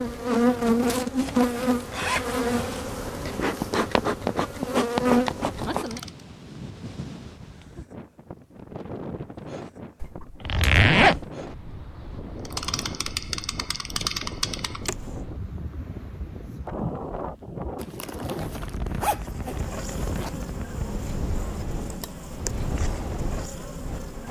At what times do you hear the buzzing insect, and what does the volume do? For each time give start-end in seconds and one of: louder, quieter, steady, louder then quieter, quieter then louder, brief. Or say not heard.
0.0-6.1 quieter then louder
12.4-15.2 brief
19.2-24.2 steady.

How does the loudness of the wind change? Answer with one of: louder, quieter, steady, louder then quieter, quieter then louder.
louder.